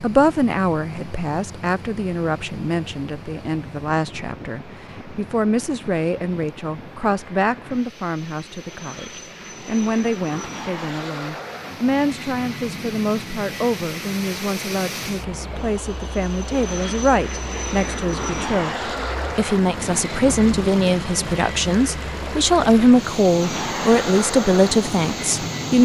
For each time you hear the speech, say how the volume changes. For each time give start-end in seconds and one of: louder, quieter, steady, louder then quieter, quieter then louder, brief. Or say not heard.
0.0-25.8 louder.